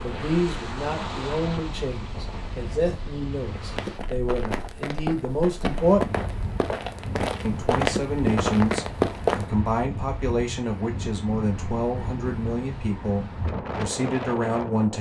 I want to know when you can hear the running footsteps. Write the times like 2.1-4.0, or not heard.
3.8-9.4.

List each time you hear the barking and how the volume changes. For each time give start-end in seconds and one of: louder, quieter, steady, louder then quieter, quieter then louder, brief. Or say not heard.
not heard.